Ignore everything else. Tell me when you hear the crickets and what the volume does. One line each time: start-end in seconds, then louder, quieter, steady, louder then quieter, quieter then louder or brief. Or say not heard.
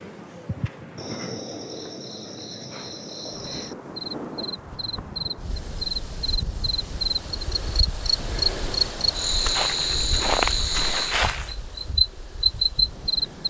0.0-13.4 louder.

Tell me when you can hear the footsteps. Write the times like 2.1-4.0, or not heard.
9.3-11.6.